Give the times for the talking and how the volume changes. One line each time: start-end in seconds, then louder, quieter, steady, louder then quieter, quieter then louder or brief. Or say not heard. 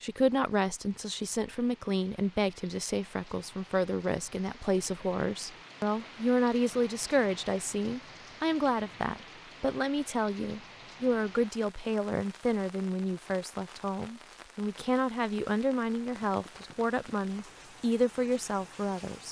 0.0-19.2 steady.